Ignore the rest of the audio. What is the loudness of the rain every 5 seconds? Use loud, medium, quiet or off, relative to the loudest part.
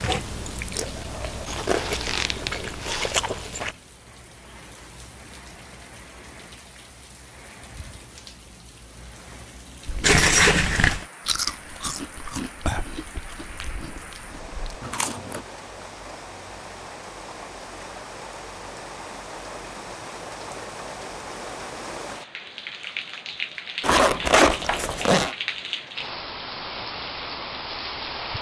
quiet, quiet, medium, medium, loud, loud.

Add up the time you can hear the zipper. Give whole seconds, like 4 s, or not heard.
4 s.